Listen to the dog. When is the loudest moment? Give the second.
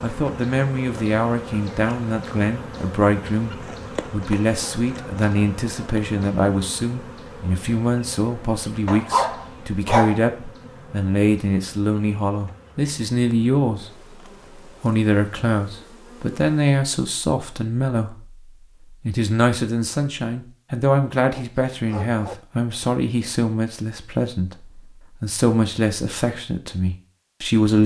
10 s.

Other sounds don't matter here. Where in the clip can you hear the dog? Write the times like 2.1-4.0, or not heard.
8.8-10.3, 21.2-22.4.